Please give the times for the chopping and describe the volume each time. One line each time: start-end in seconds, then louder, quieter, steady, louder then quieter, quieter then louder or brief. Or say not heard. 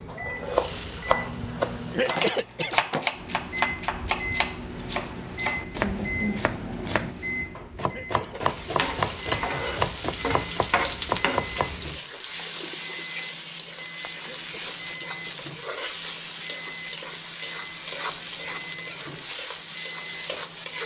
0.1-11.8 steady.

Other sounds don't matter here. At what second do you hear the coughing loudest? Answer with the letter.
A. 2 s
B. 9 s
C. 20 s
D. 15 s
A.